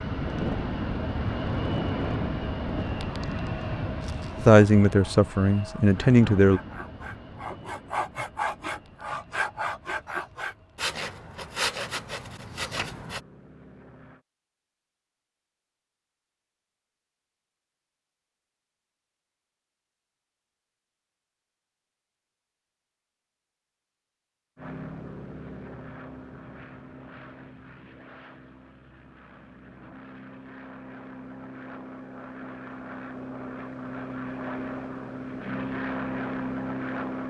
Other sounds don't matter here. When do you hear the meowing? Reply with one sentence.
You can't hear the meowing here.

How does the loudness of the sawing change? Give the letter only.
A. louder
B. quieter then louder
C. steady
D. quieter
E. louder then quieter
A.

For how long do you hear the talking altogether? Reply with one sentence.
The talking can be heard for 2 seconds in total.